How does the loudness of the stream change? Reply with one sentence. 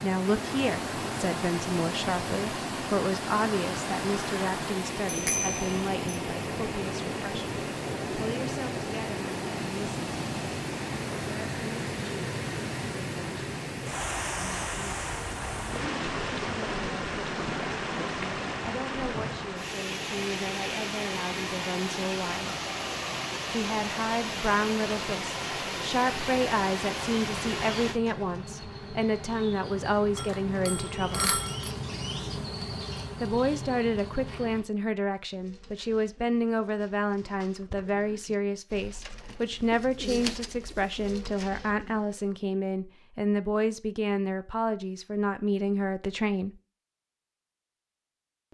The loudness of the stream stays about the same.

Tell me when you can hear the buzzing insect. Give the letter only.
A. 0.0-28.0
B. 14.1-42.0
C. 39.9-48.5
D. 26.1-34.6
D.